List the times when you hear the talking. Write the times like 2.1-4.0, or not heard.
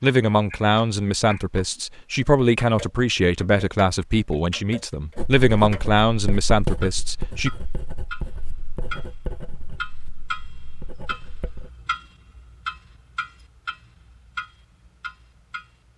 0.0-7.5.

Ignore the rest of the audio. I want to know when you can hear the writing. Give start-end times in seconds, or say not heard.
5.2-11.7.